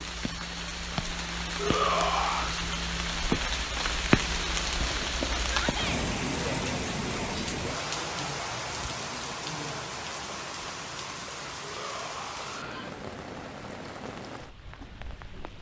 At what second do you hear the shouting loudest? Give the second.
2 s.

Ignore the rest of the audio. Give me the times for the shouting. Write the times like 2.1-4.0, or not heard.
1.6-2.5, 5.5-6.0, 11.6-12.9.